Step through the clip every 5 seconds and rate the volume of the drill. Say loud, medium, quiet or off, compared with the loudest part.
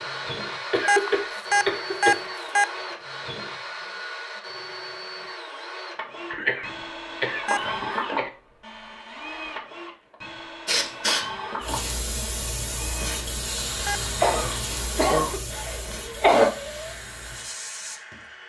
loud, loud, loud, medium.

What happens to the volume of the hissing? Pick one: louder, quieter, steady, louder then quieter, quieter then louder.
quieter.